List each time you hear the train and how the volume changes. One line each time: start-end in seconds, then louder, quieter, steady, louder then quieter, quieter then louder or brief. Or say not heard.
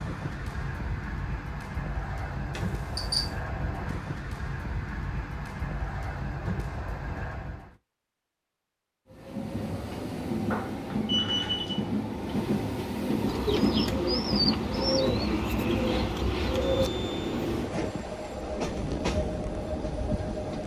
0.0-7.8 steady
9.1-20.6 steady.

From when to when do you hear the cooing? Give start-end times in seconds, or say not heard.
13.2-16.9.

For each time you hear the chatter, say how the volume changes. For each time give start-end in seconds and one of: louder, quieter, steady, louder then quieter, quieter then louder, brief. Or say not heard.
not heard.